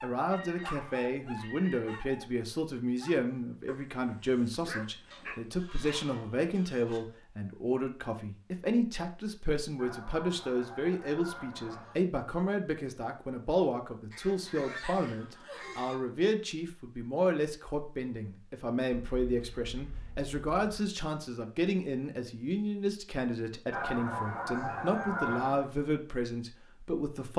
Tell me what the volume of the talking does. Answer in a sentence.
The volume of the talking stays about the same.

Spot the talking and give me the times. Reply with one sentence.
The talking can be heard from 0.0 to 27.3 s.